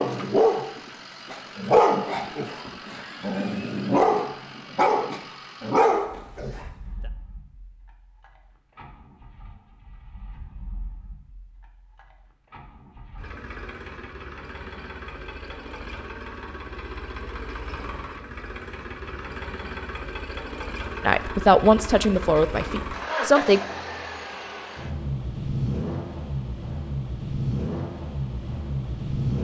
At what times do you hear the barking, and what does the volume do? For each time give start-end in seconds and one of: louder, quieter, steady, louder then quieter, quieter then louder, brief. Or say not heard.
0.0-6.7 quieter then louder.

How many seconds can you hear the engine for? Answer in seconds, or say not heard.
29 s.